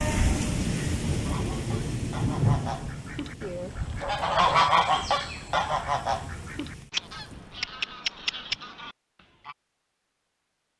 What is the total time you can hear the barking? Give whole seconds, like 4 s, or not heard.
not heard.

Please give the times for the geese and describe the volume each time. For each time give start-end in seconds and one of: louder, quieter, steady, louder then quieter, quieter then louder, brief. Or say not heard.
1.2-9.6 louder then quieter.